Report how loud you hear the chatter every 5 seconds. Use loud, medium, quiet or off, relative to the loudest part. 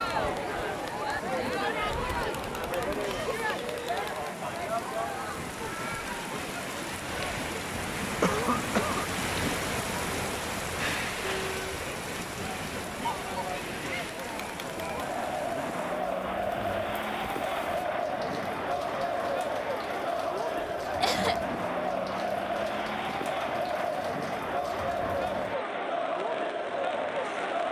loud, medium, medium, loud, loud, loud.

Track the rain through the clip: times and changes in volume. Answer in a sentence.
You can hear the rain from 0.0 to 27.6 s, getting louder then quieter.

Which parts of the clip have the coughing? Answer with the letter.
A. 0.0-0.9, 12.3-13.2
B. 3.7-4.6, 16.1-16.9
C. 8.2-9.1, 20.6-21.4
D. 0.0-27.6
C.